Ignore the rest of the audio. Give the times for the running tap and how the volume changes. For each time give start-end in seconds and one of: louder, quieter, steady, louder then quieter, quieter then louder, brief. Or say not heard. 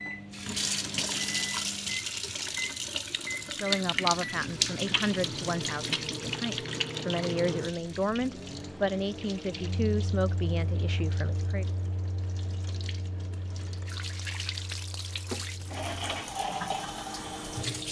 0.0-17.8 quieter then louder.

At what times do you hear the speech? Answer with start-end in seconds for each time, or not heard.
3.6-11.7.